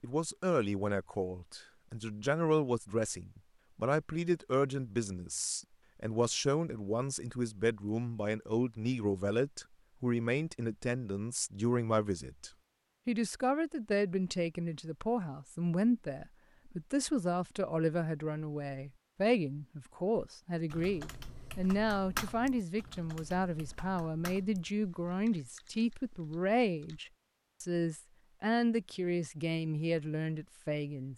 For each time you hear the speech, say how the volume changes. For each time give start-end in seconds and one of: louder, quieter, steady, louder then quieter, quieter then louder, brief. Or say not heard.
0.0-31.1 steady.